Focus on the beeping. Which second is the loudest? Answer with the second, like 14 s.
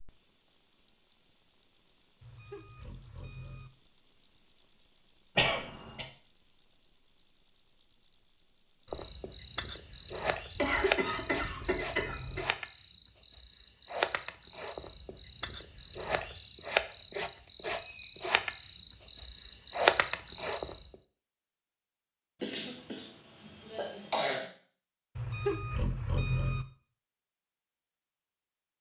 26 s.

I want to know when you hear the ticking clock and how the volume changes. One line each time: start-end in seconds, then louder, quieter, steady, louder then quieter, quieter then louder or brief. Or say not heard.
not heard.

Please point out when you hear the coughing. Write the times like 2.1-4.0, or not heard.
5.3-6.0, 10.6-12.4, 22.4-24.5.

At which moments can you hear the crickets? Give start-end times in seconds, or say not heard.
0.0-20.9.